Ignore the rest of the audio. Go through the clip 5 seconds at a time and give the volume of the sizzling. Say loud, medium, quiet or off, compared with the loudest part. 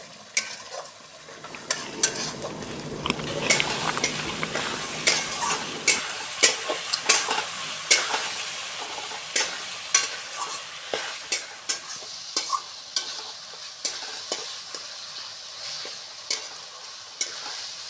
medium, loud, medium, medium.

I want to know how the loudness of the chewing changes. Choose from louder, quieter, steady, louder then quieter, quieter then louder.
louder then quieter.